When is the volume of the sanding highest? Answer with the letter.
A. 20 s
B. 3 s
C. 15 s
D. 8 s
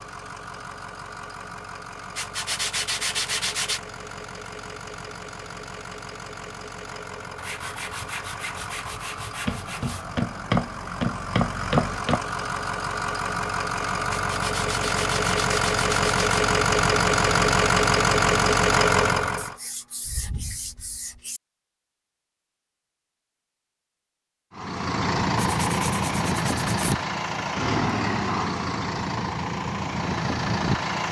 B.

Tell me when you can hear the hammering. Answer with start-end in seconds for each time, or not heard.
9.4-12.2.